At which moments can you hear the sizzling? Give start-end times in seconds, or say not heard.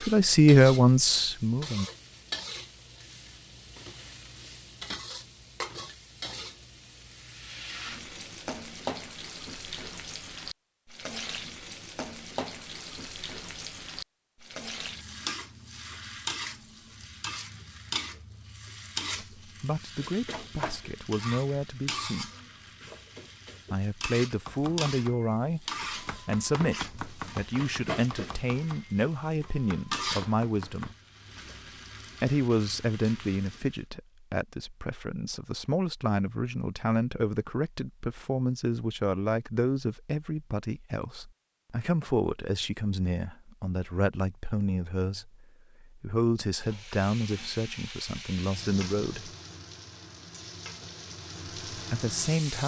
0.0-33.8, 46.5-52.6.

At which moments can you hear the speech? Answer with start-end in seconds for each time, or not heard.
0.0-1.9, 19.2-22.3, 23.7-30.9, 32.2-49.3, 51.7-52.6.